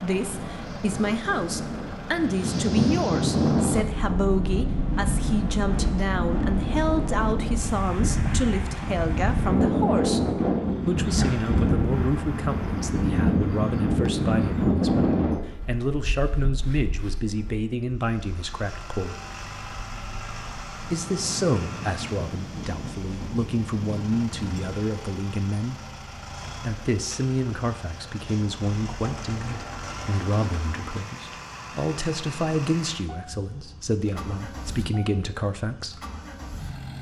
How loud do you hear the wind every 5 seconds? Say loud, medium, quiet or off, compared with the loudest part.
loud, loud, loud, medium, quiet, off, off, off.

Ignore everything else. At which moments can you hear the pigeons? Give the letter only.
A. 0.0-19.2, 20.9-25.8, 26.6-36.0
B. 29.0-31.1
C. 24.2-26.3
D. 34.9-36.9
B.